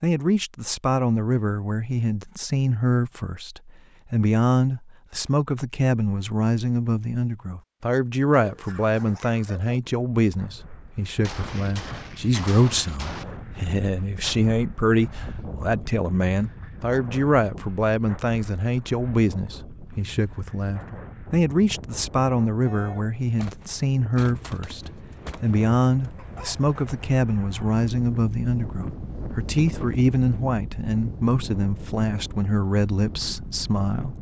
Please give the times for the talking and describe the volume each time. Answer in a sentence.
You can hear the talking from 0.0 to 34.1 s, at a steady volume.